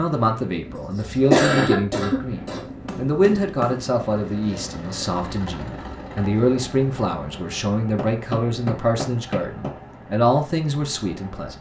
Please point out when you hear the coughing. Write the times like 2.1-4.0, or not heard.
0.8-2.6.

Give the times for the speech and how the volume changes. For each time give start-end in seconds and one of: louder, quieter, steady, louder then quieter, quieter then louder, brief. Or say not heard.
0.0-11.5 steady.